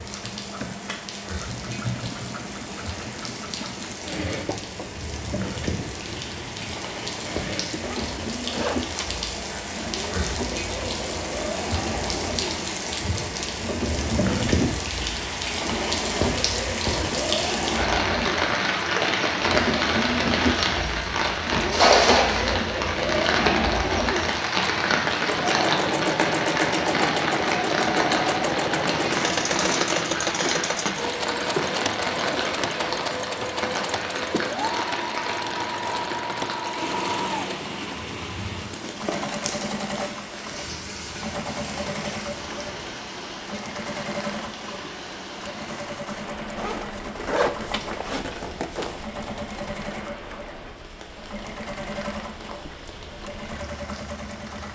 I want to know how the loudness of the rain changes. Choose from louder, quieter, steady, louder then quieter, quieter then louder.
louder then quieter.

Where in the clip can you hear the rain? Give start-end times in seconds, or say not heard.
0.0-54.7.